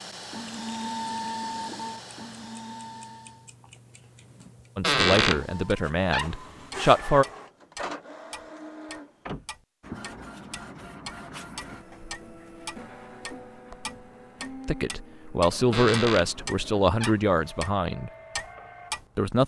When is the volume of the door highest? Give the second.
5 s.